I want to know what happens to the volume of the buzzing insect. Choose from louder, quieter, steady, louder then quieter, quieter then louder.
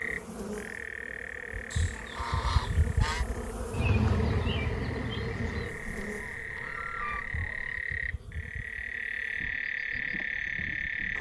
louder then quieter.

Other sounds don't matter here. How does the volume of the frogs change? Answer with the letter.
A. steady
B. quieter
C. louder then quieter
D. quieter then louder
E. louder
D.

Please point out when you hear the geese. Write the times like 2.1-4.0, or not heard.
1.7-3.2, 5.7-7.8.